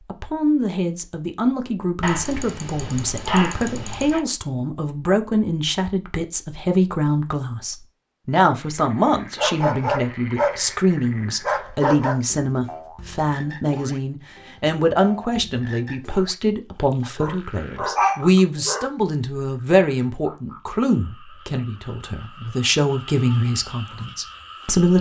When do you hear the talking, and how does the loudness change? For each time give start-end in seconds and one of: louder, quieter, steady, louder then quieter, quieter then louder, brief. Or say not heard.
0.1-24.9 steady.